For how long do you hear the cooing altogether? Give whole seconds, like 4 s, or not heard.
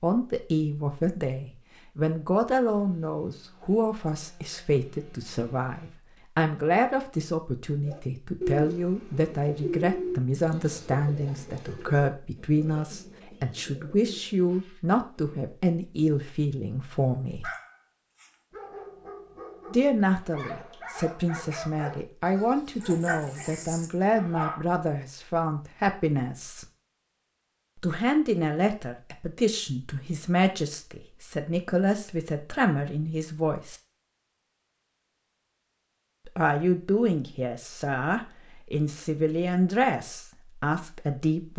8 s.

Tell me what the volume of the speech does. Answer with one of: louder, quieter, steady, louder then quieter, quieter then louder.
steady.